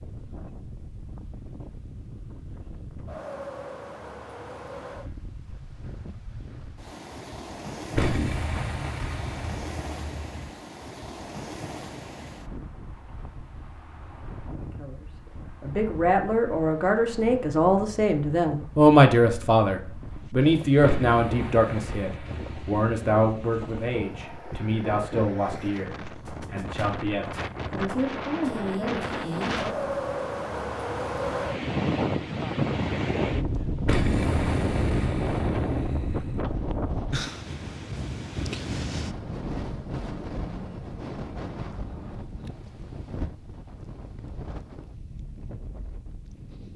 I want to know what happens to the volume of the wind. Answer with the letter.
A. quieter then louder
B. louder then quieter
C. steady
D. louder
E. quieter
B.